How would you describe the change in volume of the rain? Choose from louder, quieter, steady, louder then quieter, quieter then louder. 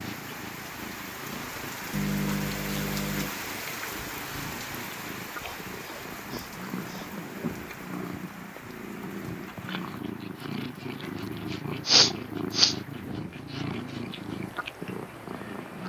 quieter.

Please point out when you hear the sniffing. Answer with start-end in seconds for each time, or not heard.
1.9-3.4, 5.4-7.5, 11.8-12.8.